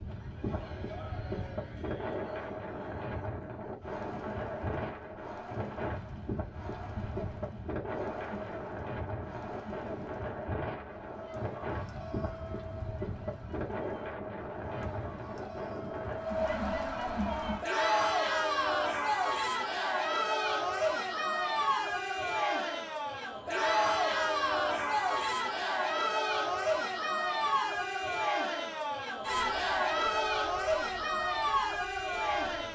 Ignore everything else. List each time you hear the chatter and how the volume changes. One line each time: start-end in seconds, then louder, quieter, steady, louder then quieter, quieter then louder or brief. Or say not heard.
0.1-32.7 louder.